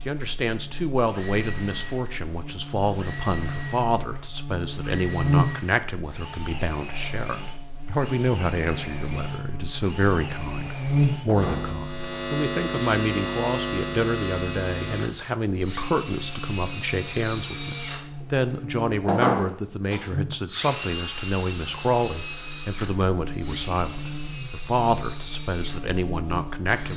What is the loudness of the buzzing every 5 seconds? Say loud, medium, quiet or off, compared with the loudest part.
medium, loud, loud, medium, medium, medium.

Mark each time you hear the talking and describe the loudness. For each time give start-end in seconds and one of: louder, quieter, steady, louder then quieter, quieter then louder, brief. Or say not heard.
0.1-26.9 steady.